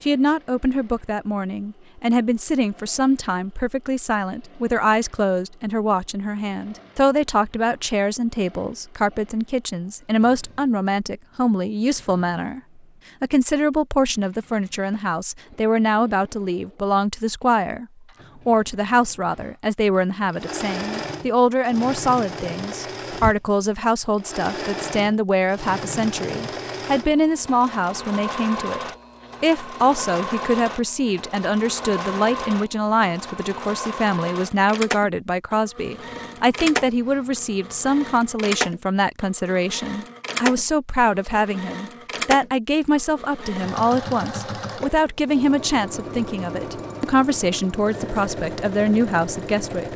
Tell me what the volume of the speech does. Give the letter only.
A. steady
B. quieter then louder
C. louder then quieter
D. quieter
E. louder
A.